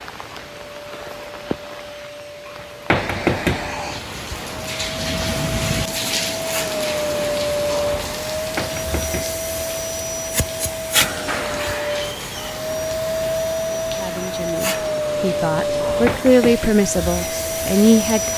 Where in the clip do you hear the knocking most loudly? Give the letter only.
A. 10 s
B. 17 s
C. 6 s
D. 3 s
D.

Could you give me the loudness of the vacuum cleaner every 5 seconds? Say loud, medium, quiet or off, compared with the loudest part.
quiet, loud, loud, loud.